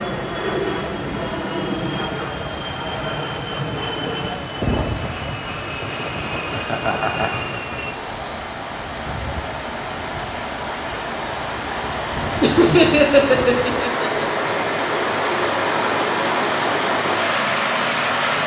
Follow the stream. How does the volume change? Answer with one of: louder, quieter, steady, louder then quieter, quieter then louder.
louder.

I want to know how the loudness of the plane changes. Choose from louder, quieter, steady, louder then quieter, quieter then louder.
quieter.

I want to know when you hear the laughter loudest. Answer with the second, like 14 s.
13 s.